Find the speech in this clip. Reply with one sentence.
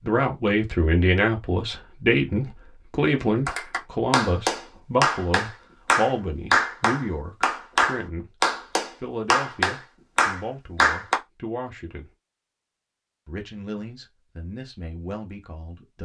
You can hear the speech from 0.0 to 8.3 s, from 9.0 to 12.1 s and from 13.2 to 16.0 s.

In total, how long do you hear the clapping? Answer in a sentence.
The clapping can be heard for 8 seconds in total.